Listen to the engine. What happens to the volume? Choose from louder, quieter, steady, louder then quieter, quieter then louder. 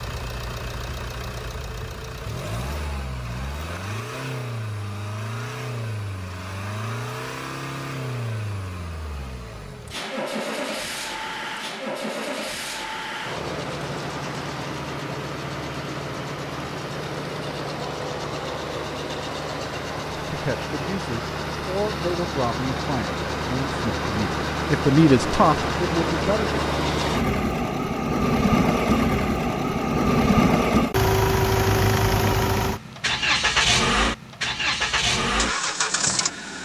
louder.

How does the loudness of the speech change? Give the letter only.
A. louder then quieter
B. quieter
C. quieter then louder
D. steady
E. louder
E.